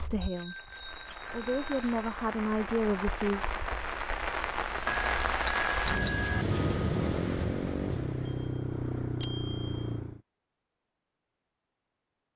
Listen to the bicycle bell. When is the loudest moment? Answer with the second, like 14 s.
6 s.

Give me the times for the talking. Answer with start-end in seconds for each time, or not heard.
0.0-3.4.